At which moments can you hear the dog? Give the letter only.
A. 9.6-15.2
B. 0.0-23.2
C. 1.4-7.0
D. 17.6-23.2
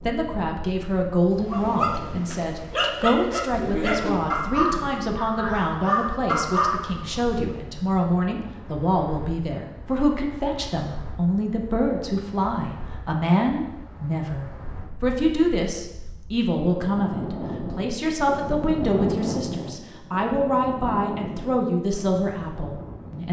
C.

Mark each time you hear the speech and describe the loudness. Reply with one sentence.
The speech can be heard from 0.0 to 23.2 s, at a steady volume.